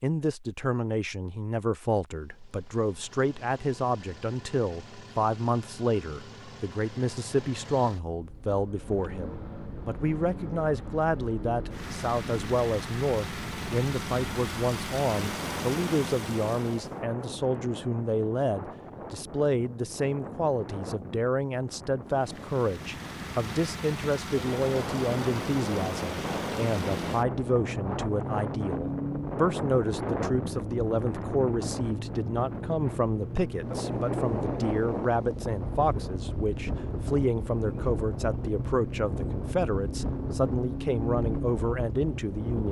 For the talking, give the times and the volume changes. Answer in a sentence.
You can hear the talking from 0.0 to 42.6 s, at a steady volume.